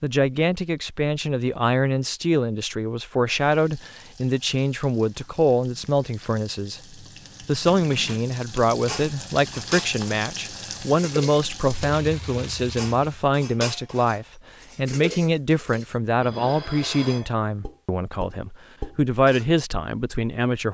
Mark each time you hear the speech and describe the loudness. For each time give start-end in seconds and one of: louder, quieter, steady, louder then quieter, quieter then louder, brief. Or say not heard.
0.0-6.8 steady
7.4-20.6 steady.